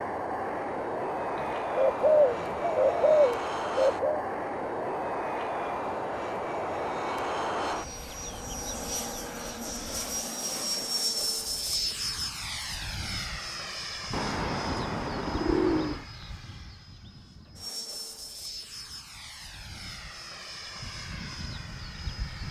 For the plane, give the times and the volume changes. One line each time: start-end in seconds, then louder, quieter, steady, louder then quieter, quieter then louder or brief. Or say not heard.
0.0-22.4 quieter.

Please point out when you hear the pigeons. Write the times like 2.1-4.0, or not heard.
1.4-4.2, 14.1-16.1.